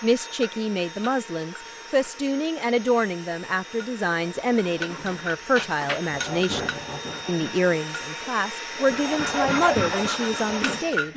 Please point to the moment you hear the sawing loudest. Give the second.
10 s.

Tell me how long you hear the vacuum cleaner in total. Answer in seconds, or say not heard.
11 s.